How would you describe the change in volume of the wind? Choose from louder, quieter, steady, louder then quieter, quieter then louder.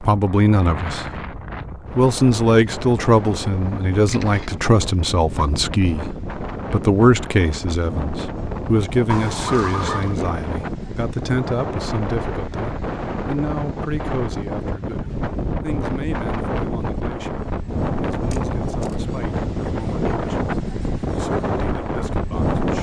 louder.